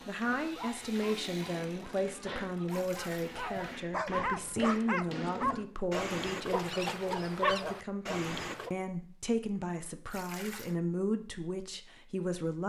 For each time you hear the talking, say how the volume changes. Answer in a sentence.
The talking can be heard from 0.1 to 12.6 s, at a steady volume.